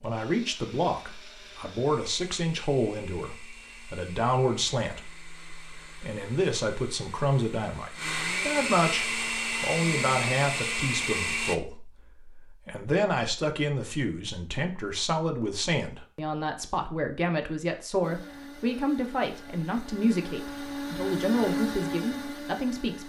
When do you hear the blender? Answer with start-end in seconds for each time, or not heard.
0.0-11.6, 18.0-23.0.